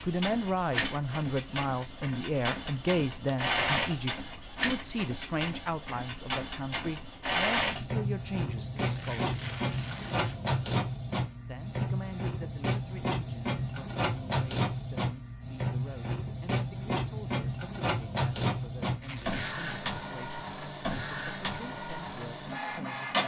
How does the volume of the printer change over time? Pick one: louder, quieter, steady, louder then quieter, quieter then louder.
steady.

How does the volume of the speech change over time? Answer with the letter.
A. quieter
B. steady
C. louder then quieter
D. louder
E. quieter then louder
A.